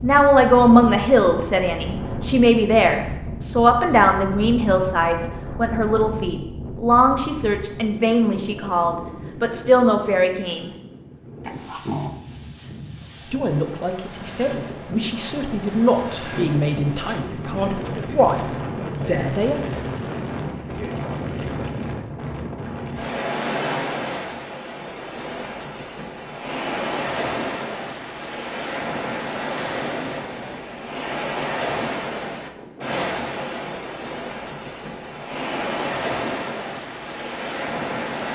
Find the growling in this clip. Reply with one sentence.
The growling can be heard from 11.4 to 12.2 s.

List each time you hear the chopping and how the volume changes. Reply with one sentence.
You can't hear the chopping here.